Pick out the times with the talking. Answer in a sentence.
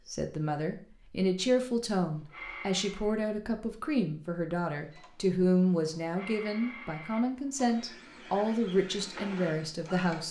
You can hear the talking from 0.1 to 10.2 s.